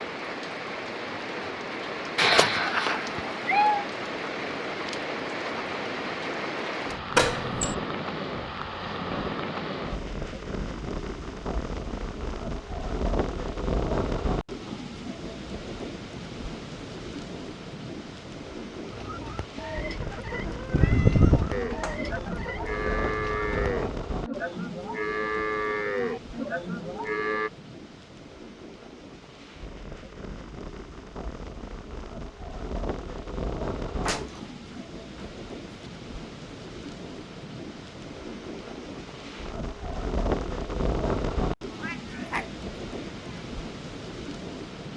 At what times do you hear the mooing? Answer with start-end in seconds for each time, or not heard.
21.5-27.5.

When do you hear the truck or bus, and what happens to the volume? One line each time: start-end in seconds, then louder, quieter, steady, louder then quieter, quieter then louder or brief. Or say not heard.
not heard.